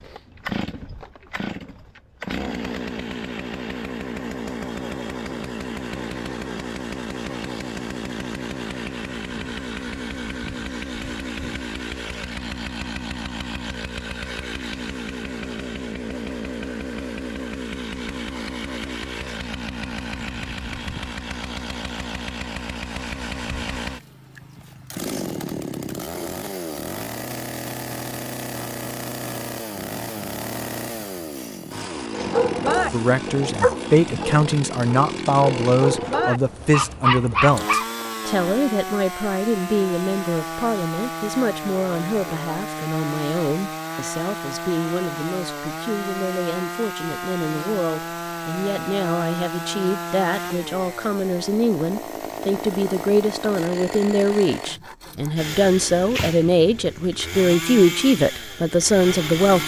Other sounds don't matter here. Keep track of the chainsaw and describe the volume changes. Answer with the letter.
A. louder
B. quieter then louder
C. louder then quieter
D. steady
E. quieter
D.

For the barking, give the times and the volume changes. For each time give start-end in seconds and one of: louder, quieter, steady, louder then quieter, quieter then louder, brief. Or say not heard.
32.1-37.9 quieter then louder.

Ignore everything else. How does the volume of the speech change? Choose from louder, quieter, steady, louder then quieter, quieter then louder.
quieter then louder.